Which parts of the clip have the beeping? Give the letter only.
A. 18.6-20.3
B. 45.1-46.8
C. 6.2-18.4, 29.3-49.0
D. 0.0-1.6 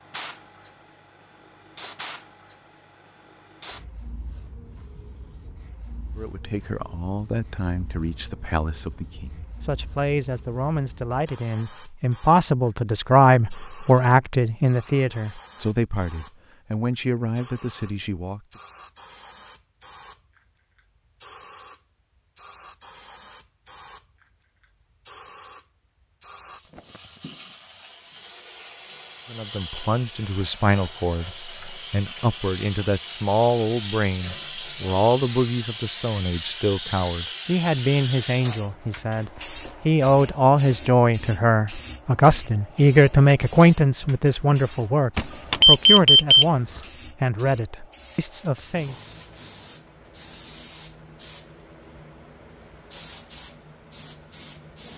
B.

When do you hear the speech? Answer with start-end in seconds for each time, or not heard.
6.2-18.4, 29.3-49.0.